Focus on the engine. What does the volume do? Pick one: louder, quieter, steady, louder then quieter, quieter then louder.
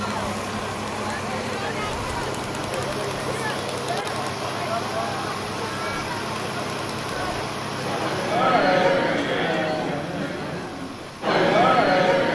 quieter.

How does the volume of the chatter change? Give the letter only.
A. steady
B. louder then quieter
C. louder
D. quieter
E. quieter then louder
C.